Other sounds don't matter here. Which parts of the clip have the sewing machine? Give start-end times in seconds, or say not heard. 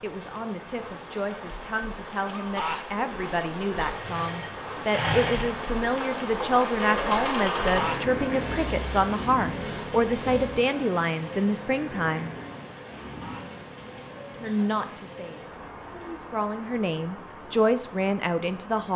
3.9-10.6.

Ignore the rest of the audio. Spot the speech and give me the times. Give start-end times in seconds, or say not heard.
0.0-12.3, 14.4-18.9.